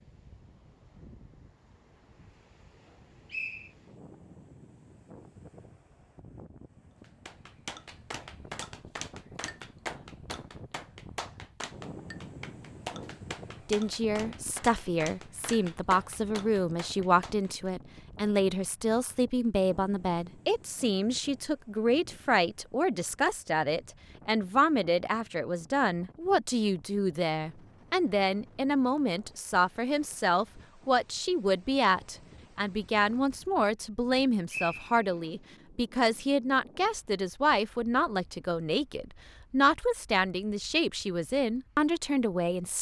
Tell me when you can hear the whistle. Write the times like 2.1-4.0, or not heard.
3.3-3.7, 34.5-35.2.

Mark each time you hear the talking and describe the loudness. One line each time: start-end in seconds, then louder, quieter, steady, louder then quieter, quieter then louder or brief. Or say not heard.
13.7-42.7 steady.